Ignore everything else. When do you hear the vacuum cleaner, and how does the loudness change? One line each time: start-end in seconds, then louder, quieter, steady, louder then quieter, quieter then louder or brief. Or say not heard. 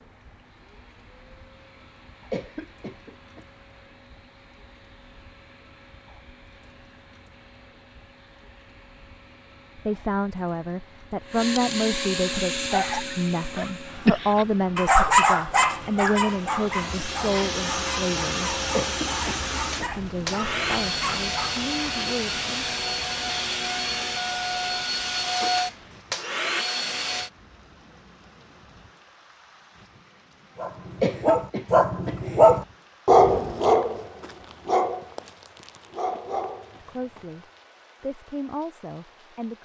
0.4-27.3 louder.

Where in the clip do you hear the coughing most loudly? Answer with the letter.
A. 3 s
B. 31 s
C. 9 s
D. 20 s
B.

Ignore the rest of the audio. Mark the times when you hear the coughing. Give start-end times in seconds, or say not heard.
2.3-3.5, 18.7-19.9, 31.0-32.2.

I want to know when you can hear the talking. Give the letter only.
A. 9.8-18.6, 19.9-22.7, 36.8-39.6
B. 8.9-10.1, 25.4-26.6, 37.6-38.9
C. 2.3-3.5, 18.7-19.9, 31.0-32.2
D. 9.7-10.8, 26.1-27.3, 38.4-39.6
A.